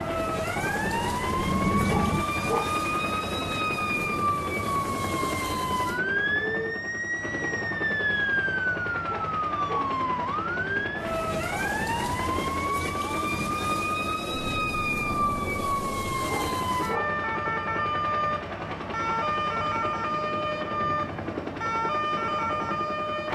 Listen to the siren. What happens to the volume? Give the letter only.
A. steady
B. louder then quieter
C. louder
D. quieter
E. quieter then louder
A.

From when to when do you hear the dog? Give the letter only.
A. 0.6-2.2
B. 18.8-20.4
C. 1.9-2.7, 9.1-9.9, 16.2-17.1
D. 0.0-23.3
C.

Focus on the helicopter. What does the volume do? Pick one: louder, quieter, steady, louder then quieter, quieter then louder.
steady.